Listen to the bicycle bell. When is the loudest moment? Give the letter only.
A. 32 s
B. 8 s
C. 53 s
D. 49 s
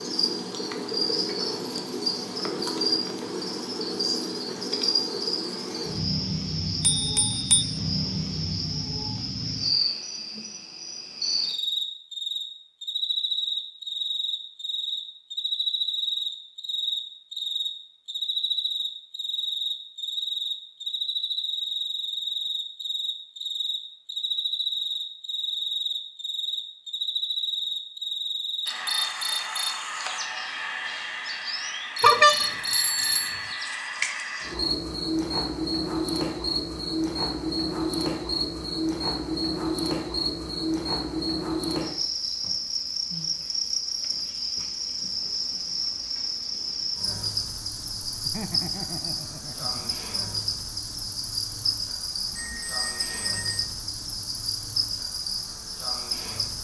A.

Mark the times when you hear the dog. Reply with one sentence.
The dog can't be heard in this clip.